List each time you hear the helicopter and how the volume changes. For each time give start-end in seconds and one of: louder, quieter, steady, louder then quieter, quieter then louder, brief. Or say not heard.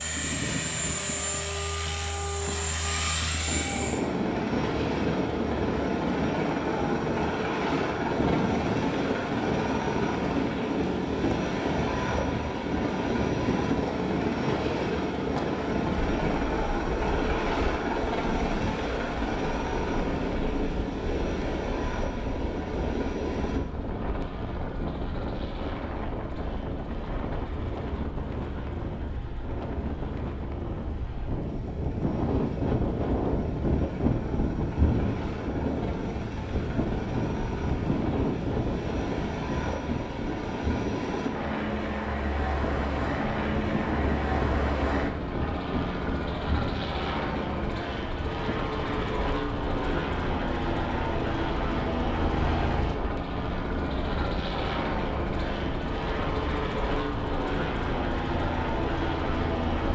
0.0-59.8 quieter then louder.